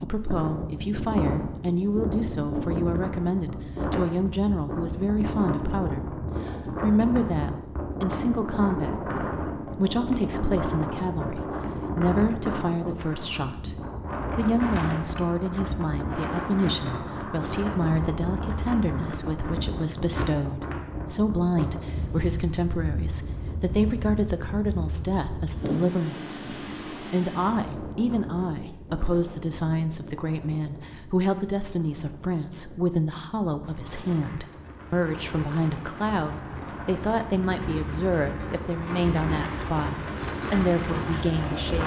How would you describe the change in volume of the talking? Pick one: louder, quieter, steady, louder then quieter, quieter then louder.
steady.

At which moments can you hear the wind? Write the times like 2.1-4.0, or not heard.
0.0-41.8.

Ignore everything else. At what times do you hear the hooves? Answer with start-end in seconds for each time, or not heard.
not heard.